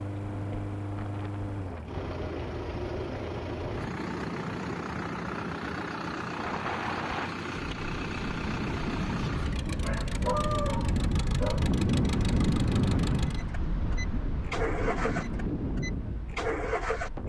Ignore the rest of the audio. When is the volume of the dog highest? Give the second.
10 s.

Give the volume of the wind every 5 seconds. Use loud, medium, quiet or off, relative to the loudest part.
quiet, medium, loud, medium.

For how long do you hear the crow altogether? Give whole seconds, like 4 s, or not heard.
not heard.